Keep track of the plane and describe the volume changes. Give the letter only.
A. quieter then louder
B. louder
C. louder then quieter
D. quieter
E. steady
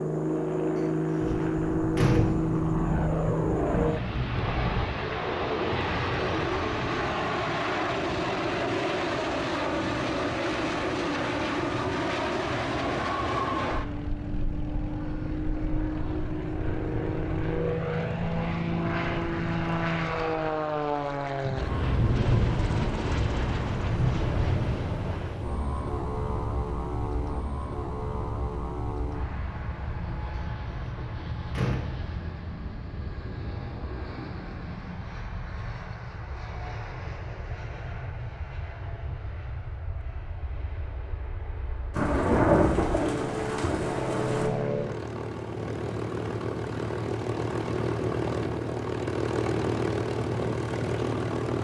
A.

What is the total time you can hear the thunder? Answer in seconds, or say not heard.
10 s.